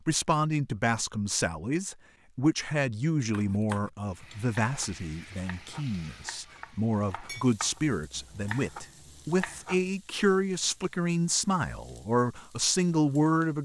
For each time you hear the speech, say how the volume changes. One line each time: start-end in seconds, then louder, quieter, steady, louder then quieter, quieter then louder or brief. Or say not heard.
0.1-13.6 steady.